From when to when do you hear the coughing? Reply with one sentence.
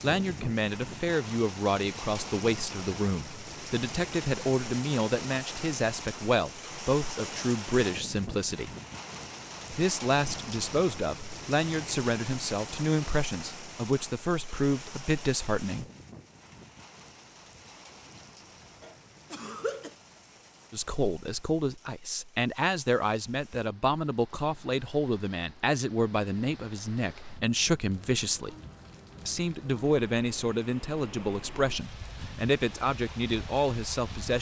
You can hear the coughing from 18.8 to 19.9 s.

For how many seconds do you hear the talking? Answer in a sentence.
You can hear the talking for 28 seconds altogether.